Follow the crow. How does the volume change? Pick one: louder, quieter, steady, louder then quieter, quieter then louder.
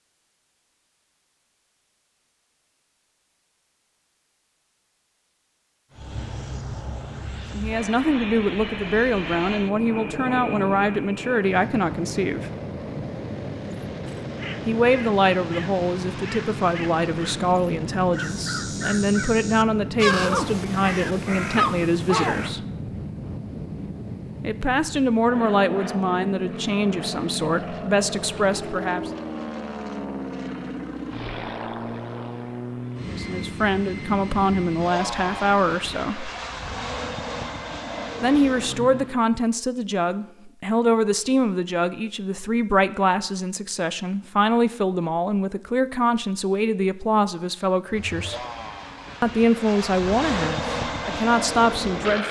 louder.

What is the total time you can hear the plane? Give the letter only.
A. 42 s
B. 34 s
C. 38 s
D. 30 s
C.